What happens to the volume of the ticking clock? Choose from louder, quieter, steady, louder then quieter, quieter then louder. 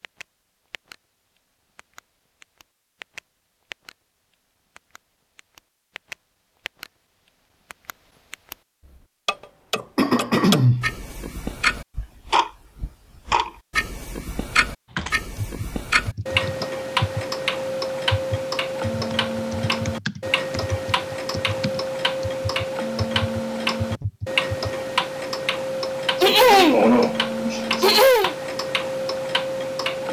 louder.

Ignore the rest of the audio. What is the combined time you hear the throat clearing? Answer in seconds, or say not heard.
3 s.